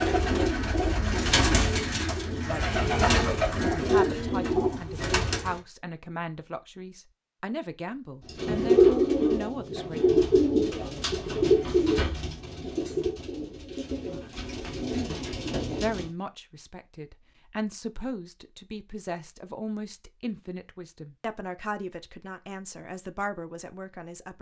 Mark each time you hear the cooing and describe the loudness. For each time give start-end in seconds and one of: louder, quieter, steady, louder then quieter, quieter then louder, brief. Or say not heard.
0.0-5.6 steady
8.2-16.1 quieter.